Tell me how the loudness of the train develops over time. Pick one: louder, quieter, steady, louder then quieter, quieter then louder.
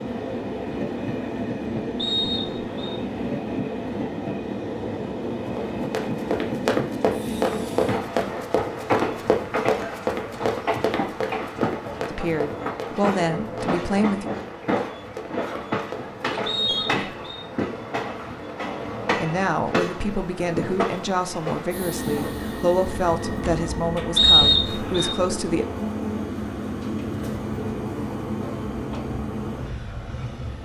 steady.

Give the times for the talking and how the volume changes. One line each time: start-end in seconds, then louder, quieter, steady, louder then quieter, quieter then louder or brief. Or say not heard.
12.1-14.3 brief
19.2-25.6 steady.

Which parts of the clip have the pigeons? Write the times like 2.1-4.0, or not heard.
not heard.